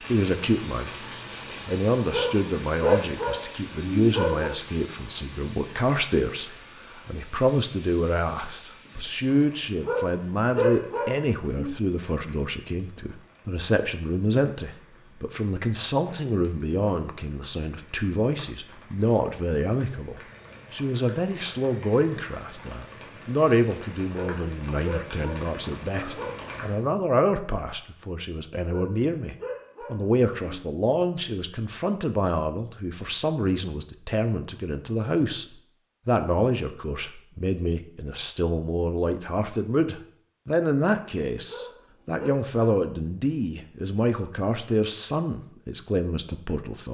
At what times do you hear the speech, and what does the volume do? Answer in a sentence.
The speech can be heard from 0.1 to 46.8 s, at a steady volume.